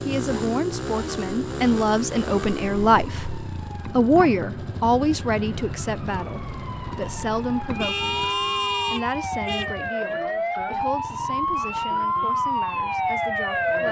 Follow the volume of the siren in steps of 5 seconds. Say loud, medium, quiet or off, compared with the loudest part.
quiet, medium, loud.